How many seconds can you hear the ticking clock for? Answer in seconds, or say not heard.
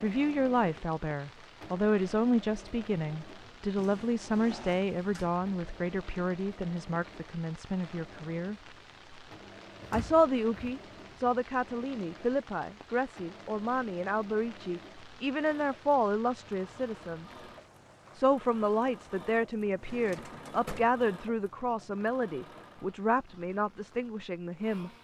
not heard.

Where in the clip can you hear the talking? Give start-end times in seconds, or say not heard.
0.0-8.6, 9.9-17.2, 18.1-24.9.